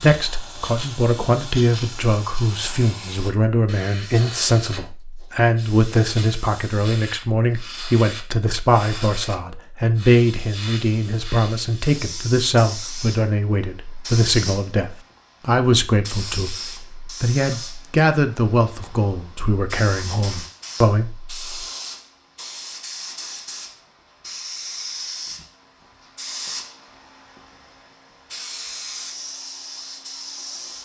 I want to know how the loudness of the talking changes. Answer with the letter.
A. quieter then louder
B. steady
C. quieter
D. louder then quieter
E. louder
B.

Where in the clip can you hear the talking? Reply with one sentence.
The talking can be heard from 0.0 to 21.4 s.